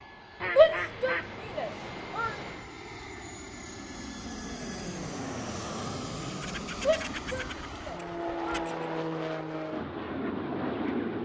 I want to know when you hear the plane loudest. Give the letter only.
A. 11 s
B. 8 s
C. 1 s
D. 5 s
A.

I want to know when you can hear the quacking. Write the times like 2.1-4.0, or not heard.
0.4-2.7, 6.4-8.9.